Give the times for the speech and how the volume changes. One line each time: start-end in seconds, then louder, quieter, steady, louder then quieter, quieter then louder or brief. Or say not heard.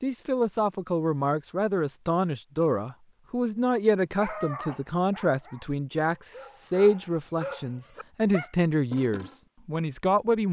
0.0-10.4 steady.